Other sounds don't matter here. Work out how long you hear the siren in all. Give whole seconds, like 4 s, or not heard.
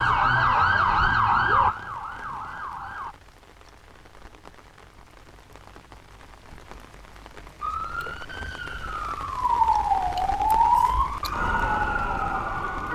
8 s.